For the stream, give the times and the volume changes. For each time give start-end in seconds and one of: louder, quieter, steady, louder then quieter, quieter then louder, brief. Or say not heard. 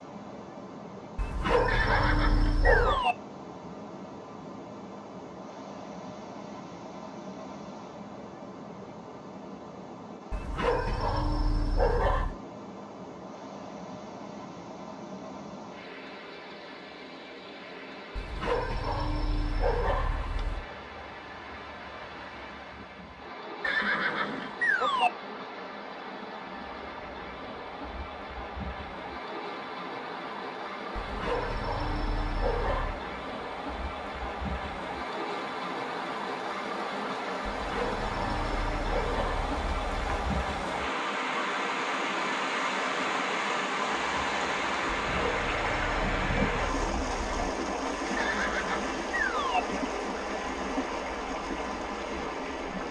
0.0-52.8 louder.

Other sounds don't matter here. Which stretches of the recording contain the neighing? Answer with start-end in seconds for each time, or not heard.
1.6-3.1, 23.6-25.1, 48.1-49.6.